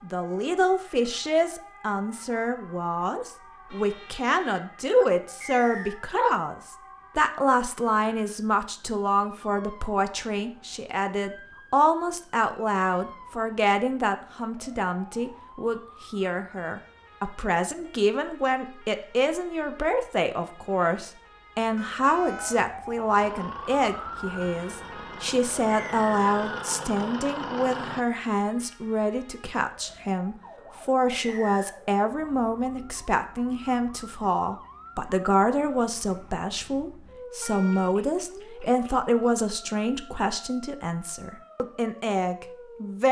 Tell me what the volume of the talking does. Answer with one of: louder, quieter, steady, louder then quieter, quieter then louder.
steady.